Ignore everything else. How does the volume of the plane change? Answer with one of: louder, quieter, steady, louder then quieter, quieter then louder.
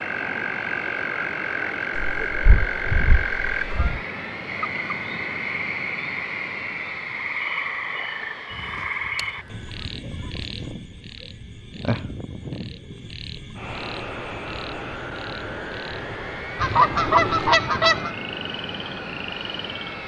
quieter then louder.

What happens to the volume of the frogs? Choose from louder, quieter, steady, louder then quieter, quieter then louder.
quieter.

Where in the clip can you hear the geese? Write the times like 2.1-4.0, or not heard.
2.0-4.0, 8.5-10.5, 16.6-18.1.